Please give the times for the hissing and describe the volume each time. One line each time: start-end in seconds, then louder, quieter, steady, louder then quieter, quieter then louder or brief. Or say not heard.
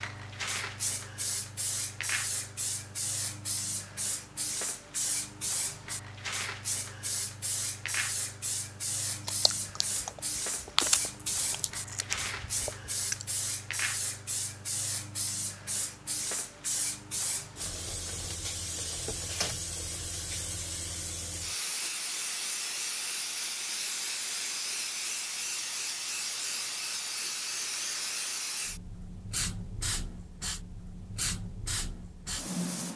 0.0-32.9 steady.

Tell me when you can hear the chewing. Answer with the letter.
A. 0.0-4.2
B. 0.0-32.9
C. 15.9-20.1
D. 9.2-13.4
D.